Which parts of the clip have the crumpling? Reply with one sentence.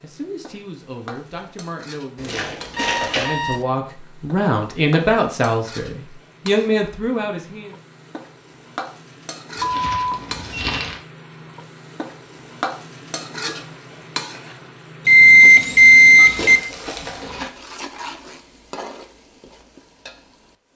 You can hear the crumpling from 2.2 to 3.4 s, from 9.6 to 11.0 s and from 16.4 to 17.5 s.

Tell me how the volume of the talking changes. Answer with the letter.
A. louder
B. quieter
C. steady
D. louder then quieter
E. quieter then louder
A.